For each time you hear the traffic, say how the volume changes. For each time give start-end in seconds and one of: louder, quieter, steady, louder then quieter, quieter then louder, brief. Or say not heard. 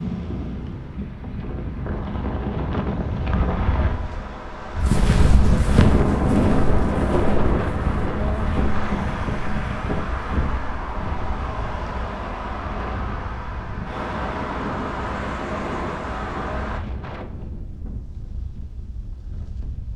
0.0-16.8 louder.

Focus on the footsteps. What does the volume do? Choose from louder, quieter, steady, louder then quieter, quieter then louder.
quieter.